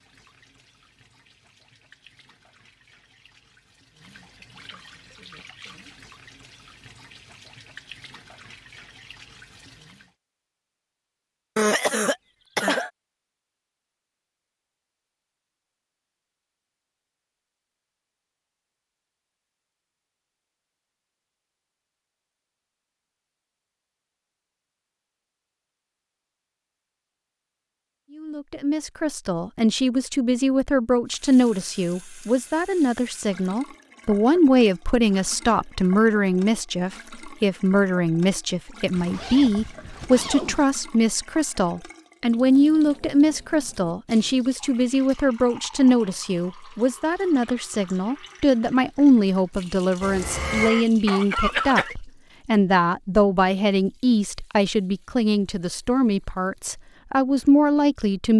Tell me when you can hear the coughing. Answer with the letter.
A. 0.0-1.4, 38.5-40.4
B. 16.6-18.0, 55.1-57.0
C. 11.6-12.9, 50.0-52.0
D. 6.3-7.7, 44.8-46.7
C.